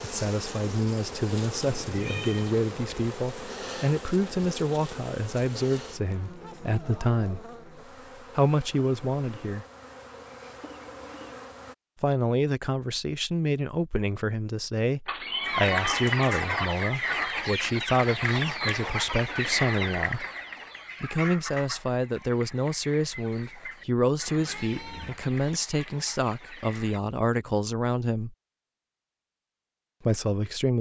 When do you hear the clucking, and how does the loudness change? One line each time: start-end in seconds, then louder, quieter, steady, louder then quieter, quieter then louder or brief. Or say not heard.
15.4-27.0 quieter.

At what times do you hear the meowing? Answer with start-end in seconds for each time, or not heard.
1.7-2.5, 15.1-16.6, 24.4-25.2.